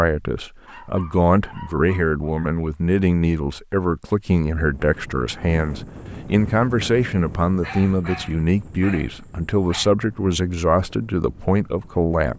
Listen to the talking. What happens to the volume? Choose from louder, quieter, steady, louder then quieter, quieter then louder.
steady.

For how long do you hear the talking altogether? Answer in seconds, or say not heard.
12 s.